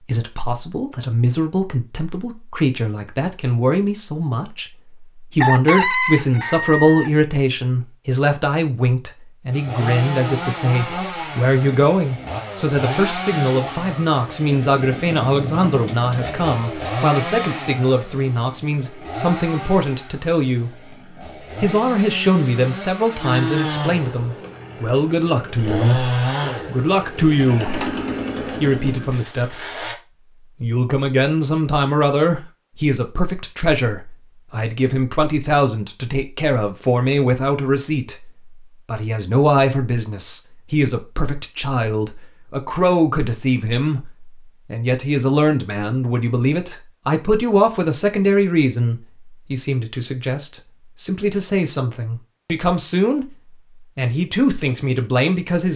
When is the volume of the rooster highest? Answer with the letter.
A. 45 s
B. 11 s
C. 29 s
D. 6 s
D.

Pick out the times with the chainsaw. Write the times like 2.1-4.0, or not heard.
9.5-29.9.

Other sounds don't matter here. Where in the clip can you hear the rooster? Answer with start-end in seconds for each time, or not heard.
5.4-7.1.